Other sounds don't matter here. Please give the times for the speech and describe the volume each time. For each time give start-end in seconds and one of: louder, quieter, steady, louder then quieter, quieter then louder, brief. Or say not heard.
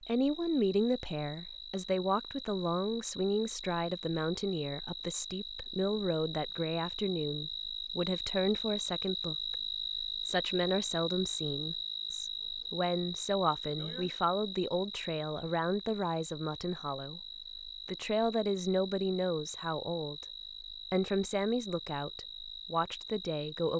0.1-23.7 steady.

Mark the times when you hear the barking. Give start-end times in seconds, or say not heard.
not heard.